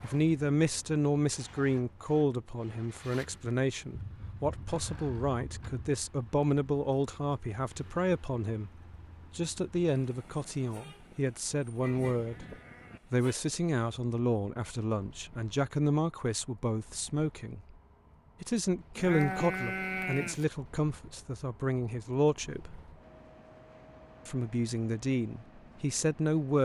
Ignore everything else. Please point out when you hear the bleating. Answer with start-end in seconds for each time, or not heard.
4.0-5.9, 10.9-13.0, 18.9-20.4.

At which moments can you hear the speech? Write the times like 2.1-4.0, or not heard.
0.0-8.7, 9.3-12.4, 13.1-17.8, 18.4-22.7, 24.2-26.6.